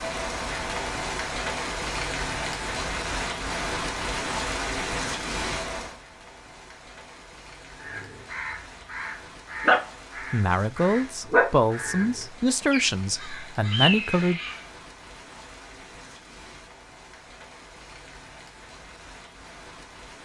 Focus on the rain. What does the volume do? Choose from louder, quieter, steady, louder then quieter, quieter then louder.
quieter.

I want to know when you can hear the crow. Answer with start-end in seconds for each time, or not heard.
7.8-14.6.